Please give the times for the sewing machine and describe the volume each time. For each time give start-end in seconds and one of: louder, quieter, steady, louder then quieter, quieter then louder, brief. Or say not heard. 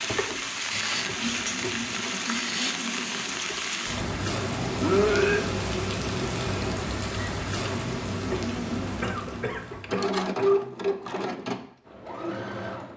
0.0-12.9 louder.